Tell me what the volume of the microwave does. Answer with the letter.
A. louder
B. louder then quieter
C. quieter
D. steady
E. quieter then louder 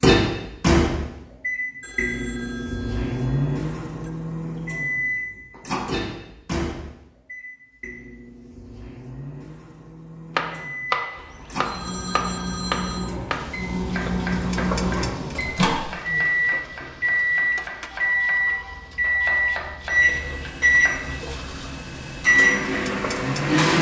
E.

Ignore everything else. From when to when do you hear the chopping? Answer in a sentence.
The chopping can be heard from 10.3 to 21.2 s.